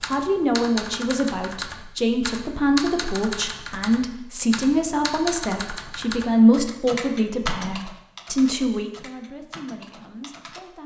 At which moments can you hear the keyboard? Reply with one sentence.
You can hear the keyboard from 0.0 to 10.6 s.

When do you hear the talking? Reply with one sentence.
The talking can be heard from 0.1 to 10.8 s.